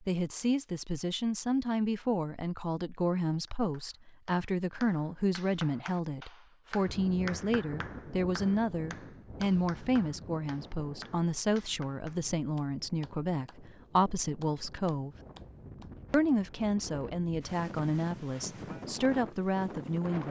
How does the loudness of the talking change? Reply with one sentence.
The loudness of the talking stays about the same.